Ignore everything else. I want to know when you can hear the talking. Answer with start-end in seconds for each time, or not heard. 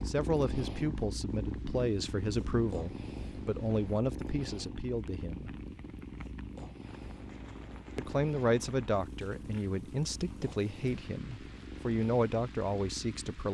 0.0-5.5, 8.0-13.4.